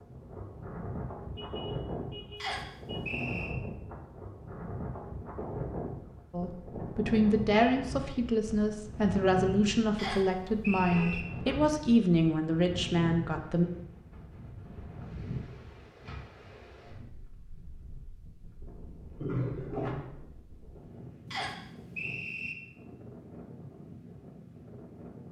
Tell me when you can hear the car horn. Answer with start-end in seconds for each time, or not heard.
1.4-3.1, 10.9-11.7, 19.2-20.1.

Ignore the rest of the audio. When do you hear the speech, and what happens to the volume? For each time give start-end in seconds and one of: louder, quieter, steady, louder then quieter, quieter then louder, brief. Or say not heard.
6.3-13.7 steady.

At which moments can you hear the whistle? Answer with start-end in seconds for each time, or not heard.
2.4-3.5, 9.9-11.2, 21.3-22.6.